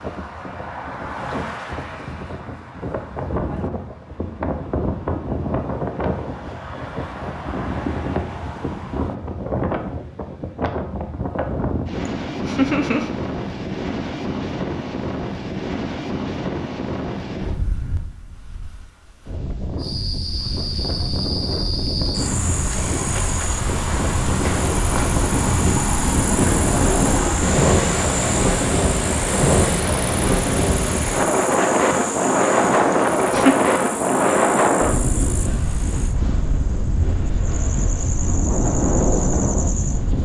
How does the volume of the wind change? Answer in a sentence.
The volume of the wind goes up.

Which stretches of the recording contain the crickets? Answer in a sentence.
You can hear the crickets from 19.8 to 40.2 s.